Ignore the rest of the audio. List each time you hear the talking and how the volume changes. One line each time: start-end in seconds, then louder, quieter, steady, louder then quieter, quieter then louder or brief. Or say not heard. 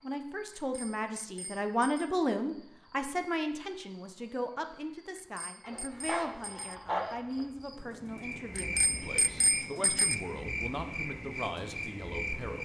0.0-12.5 quieter.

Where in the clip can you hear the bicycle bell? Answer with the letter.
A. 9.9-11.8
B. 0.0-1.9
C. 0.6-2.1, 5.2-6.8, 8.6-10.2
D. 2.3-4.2
C.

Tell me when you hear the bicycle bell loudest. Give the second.
10 s.